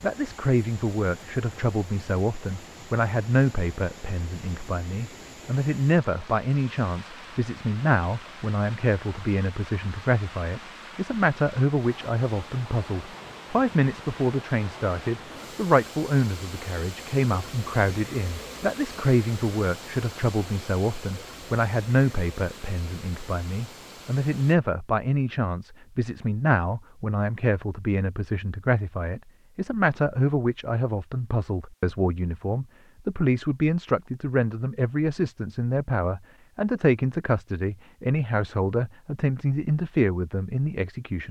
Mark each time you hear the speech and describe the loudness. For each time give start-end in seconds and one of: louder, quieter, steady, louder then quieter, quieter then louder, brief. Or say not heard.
0.0-41.2 steady.